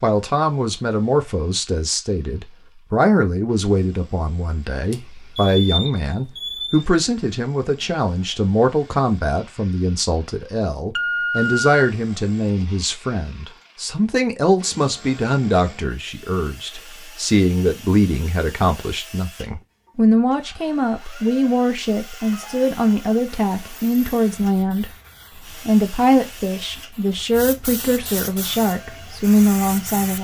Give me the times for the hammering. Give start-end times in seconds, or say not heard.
not heard.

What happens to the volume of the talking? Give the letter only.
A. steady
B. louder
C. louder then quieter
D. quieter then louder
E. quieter
A.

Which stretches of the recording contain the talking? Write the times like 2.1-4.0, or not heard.
0.0-24.9, 25.6-30.1.